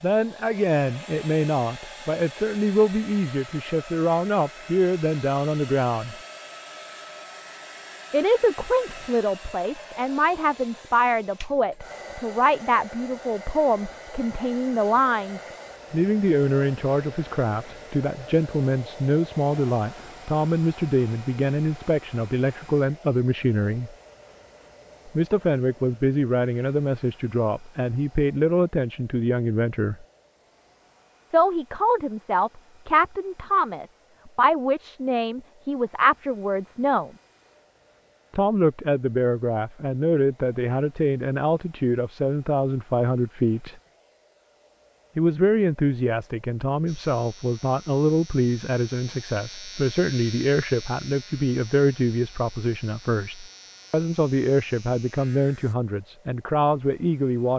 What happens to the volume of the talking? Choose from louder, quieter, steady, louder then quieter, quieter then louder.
steady.